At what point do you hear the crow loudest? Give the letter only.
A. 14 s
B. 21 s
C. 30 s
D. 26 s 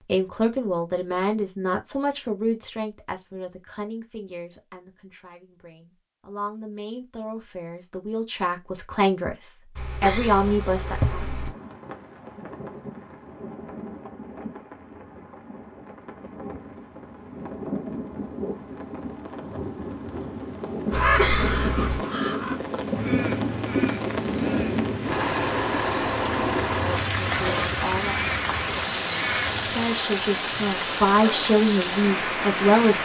B.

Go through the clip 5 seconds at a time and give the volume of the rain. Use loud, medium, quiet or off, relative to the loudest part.
off, off, quiet, medium, loud, loud, loud.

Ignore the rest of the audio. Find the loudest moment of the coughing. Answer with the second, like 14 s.
21 s.